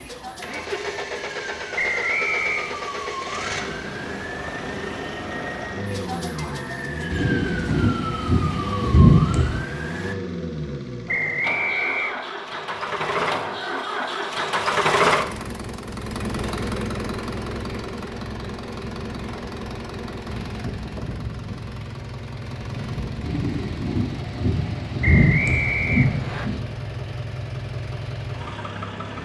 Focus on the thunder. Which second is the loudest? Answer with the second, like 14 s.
9 s.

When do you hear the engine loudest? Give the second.
15 s.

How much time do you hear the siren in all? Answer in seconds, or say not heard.
10 s.